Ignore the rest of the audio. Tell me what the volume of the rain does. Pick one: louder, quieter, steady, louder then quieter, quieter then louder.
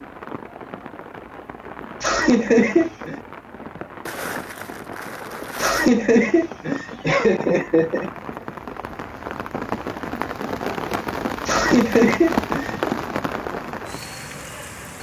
louder.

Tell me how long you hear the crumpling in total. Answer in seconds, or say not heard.
2 s.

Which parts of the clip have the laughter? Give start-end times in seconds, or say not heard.
2.0-3.2, 5.5-8.1, 11.4-12.8.